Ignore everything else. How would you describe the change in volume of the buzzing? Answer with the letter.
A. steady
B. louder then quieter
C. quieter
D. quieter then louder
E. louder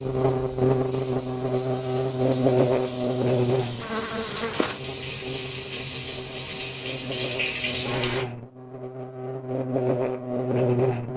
D.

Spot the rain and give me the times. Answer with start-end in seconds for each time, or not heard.
0.0-8.2.